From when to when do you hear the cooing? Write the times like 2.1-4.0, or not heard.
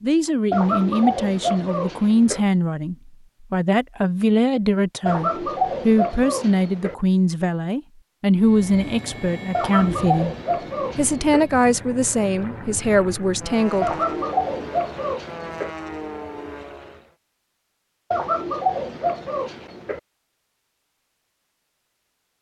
0.5-2.4, 5.0-7.0, 9.5-11.4, 13.8-15.7, 18.1-20.0.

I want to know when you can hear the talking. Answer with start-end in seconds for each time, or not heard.
0.0-10.3, 10.9-13.9.